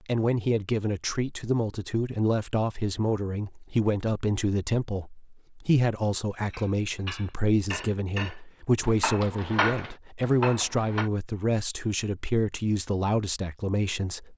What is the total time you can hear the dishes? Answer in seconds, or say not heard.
5 s.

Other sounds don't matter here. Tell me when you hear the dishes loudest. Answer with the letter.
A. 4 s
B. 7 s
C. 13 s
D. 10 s
D.